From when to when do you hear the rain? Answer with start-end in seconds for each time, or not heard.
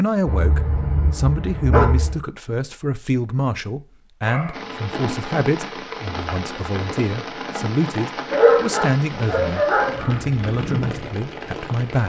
4.5-12.0.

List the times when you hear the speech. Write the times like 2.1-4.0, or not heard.
0.0-12.0.